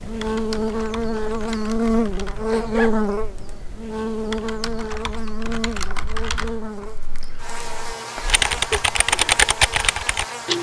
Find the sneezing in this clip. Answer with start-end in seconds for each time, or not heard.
2.5-3.0, 8.2-8.8.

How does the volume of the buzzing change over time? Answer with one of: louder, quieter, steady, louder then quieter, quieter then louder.
quieter.